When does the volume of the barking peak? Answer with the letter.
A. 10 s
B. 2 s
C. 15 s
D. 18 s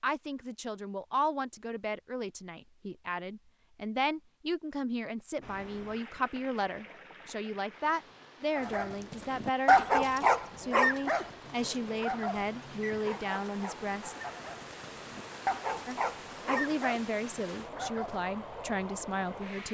A.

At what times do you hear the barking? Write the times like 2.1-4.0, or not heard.
8.6-18.2.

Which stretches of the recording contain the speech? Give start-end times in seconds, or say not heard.
0.0-14.2, 15.8-19.7.